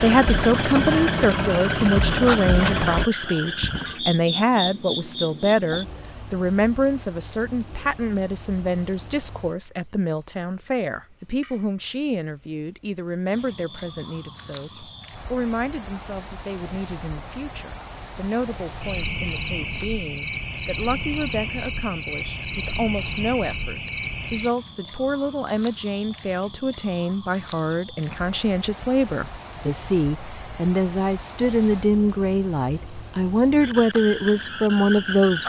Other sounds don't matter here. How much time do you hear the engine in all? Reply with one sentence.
You can hear the engine for 3 seconds altogether.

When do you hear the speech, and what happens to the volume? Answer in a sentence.
You can hear the speech from 0.0 to 35.4 s, getting quieter then louder.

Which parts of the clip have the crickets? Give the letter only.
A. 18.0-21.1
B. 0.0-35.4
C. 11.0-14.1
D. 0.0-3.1
B.